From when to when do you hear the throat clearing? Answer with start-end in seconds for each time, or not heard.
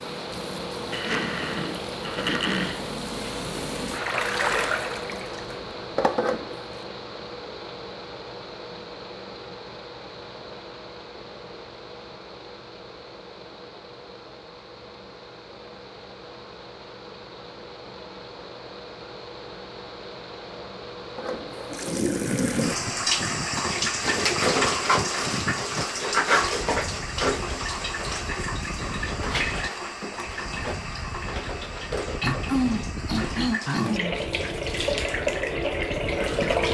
0.9-2.9, 32.2-34.6.